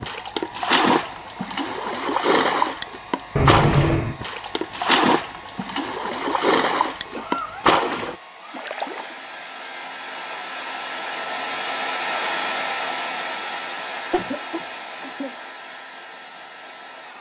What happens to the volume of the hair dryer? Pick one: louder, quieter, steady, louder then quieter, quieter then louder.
louder then quieter.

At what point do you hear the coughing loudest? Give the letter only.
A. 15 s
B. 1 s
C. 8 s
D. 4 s
D.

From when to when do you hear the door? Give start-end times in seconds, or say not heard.
not heard.